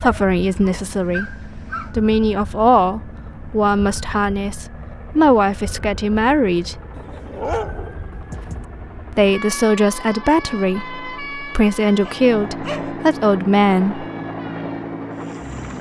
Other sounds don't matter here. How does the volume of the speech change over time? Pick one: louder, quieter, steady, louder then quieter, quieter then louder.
steady.